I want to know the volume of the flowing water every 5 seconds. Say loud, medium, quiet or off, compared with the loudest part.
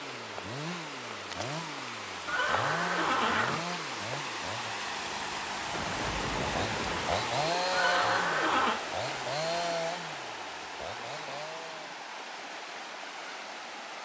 loud, loud, medium.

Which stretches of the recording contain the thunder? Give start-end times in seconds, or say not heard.
5.7-7.3.